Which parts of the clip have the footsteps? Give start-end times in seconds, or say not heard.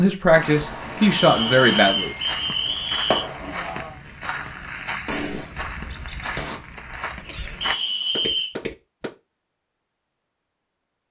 0.3-9.1.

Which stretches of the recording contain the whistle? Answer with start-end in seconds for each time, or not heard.
1.1-3.2, 7.6-8.6.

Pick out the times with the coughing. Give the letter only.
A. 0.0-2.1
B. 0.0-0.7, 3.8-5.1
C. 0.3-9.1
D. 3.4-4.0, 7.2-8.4
D.